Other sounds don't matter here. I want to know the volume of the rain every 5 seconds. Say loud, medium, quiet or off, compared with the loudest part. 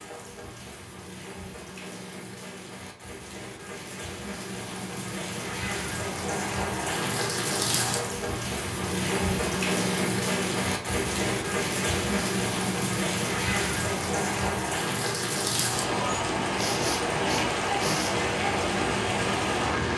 quiet, loud, loud, loud.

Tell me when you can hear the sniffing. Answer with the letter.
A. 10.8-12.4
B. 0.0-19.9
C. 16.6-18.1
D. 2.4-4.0
C.